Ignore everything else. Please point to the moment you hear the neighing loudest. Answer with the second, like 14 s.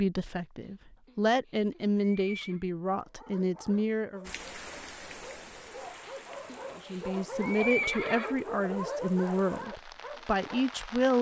8 s.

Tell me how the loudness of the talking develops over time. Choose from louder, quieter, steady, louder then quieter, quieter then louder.
steady.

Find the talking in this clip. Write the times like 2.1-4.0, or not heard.
0.0-4.3, 6.8-11.1.